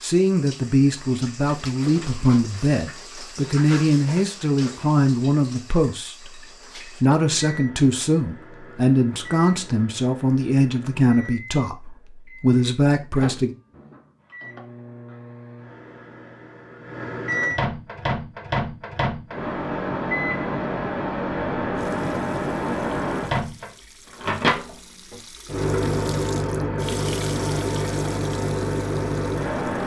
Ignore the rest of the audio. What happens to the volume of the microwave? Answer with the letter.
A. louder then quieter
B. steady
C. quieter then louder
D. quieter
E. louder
E.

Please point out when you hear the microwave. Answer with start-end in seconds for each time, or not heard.
7.2-29.8.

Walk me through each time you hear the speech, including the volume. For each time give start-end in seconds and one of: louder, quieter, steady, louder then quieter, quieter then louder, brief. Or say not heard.
0.0-13.6 steady.